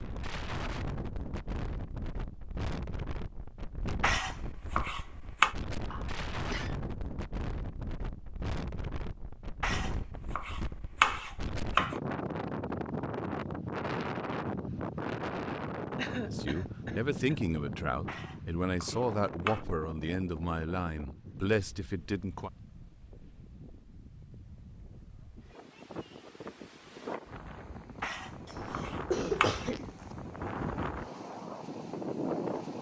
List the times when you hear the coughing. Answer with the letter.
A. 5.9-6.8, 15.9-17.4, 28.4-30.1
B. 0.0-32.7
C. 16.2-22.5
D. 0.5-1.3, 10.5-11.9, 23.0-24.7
A.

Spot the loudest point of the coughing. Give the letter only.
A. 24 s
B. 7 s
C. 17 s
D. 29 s
D.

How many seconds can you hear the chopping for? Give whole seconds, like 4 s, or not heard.
7 s.